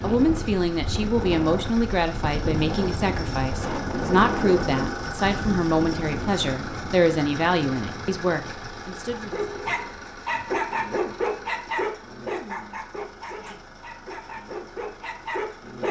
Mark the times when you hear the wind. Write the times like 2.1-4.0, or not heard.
0.0-10.6.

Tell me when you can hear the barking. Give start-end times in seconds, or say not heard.
9.1-15.8.